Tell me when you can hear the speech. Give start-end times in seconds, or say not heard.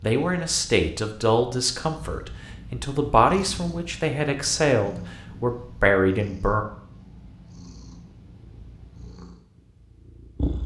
0.0-6.7.